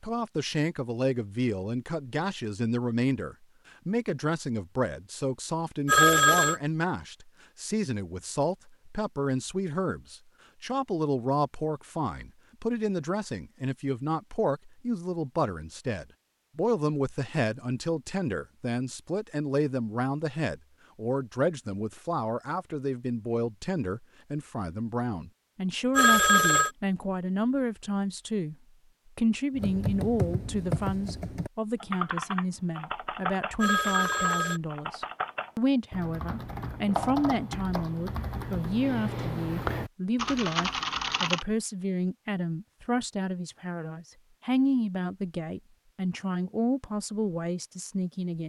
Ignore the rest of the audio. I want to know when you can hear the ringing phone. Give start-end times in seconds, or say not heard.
5.8-6.6, 25.9-26.7, 33.6-34.6.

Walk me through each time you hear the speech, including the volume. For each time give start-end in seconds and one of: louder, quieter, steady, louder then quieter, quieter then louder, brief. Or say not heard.
0.0-28.6 steady
29.1-48.4 steady.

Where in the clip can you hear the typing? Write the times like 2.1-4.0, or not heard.
29.6-41.5.